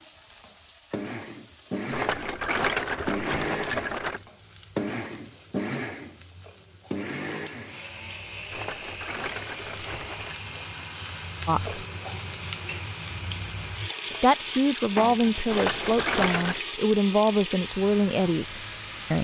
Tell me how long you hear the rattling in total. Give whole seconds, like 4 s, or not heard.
5 s.